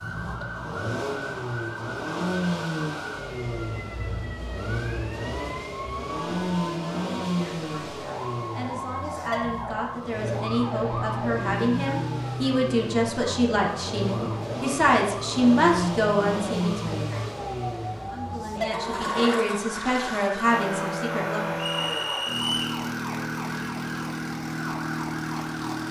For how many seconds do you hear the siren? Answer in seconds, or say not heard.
26 s.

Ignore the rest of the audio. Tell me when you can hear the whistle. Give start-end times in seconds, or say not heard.
21.6-22.8.